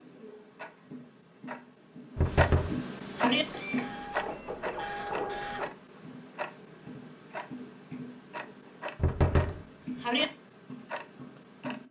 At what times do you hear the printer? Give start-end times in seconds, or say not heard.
3.3-5.7.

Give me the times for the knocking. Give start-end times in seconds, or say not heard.
2.1-3.5, 8.9-10.2.